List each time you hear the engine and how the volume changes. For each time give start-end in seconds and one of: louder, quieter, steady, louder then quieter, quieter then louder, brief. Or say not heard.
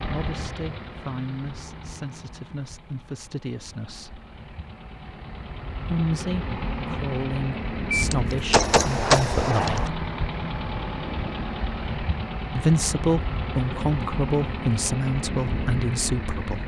0.0-16.6 louder.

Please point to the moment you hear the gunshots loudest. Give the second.
9 s.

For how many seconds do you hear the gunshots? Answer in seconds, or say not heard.
2 s.